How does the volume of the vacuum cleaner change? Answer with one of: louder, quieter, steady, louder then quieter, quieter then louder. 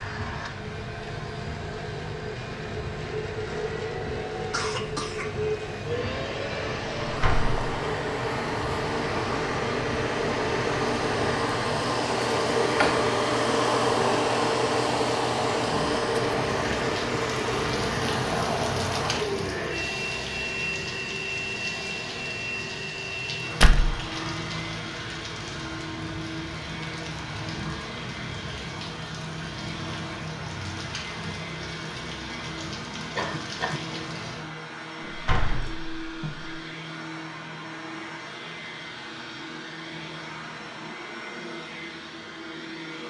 louder then quieter.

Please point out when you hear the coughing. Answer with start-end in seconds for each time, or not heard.
4.5-5.4, 33.1-33.8.